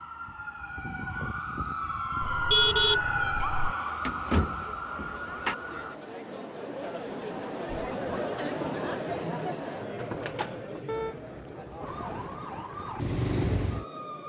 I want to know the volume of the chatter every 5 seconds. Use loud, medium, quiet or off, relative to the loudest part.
quiet, loud, medium.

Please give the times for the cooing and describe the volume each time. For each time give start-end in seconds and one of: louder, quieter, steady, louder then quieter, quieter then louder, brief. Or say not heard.
not heard.